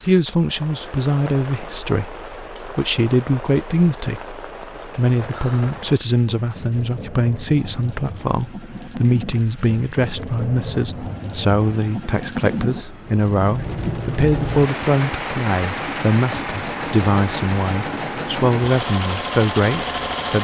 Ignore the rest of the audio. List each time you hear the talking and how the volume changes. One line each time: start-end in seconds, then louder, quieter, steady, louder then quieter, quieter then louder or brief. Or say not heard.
0.1-20.3 steady.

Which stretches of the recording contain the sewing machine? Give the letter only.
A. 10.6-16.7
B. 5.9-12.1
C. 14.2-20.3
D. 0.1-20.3
C.